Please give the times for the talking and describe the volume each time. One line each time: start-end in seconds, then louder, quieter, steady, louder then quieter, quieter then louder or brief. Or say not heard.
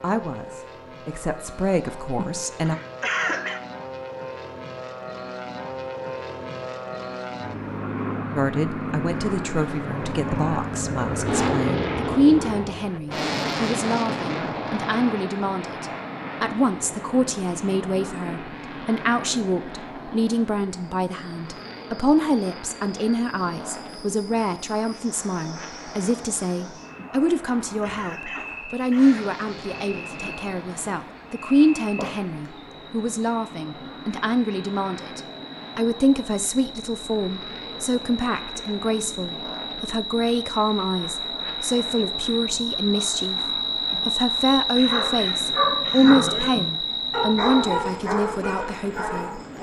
0.0-2.8 brief
8.3-49.4 steady.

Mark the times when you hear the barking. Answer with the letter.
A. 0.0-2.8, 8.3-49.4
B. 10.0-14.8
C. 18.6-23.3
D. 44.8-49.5
D.